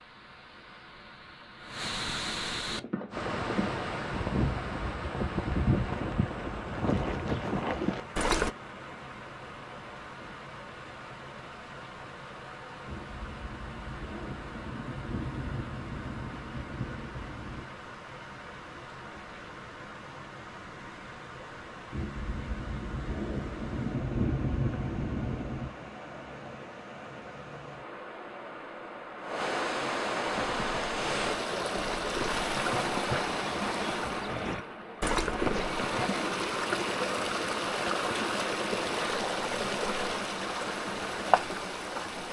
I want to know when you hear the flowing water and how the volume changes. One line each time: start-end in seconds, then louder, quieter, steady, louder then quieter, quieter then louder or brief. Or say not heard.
0.0-42.2 quieter then louder.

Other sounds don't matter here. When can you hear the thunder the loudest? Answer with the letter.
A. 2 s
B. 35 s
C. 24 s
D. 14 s
C.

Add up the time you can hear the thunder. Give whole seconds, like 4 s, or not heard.
9 s.